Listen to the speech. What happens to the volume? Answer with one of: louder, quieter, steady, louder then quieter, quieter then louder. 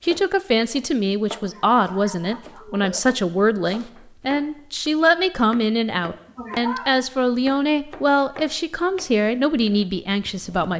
steady.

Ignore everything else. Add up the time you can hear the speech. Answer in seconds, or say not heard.
11 s.